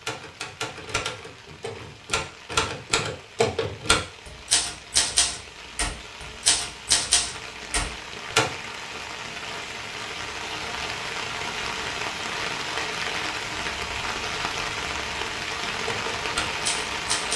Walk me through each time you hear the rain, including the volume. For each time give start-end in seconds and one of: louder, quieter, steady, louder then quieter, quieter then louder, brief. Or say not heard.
0.0-17.3 louder.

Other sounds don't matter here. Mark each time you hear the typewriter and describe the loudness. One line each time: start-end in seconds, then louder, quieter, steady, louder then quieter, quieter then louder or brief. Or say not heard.
0.0-8.5 louder
15.8-17.3 brief.